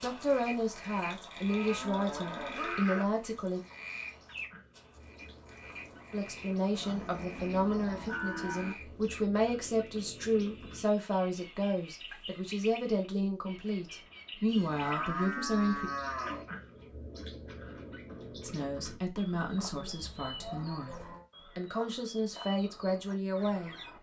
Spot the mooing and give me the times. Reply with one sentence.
You can hear the mooing from 1.1 to 3.0 s, from 6.7 to 8.8 s, from 14.4 to 16.4 s and from 19.4 to 21.2 s.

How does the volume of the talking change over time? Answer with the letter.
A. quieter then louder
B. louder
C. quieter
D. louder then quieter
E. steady
E.